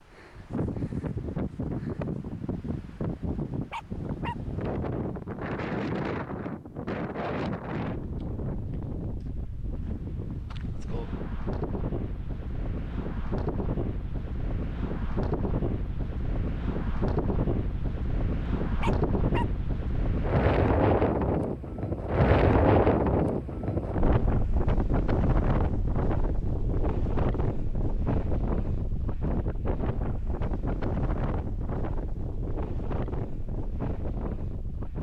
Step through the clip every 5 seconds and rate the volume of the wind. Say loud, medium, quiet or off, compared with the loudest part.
medium, medium, medium, medium, loud, medium, medium.